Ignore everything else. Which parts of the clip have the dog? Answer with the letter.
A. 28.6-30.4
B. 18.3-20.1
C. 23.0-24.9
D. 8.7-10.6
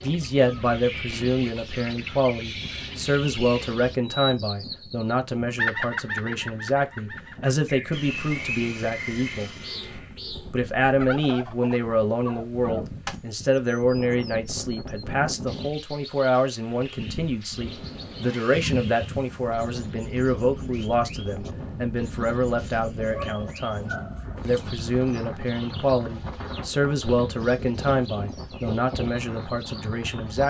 C.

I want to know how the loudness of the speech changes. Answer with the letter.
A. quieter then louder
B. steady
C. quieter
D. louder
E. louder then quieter
B.